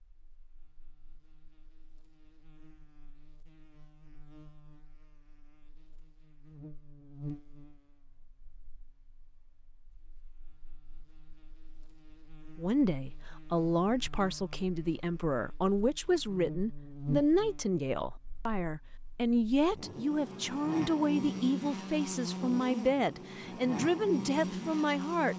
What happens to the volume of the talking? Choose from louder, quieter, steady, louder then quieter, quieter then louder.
steady.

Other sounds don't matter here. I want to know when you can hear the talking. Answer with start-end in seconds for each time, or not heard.
12.6-25.3.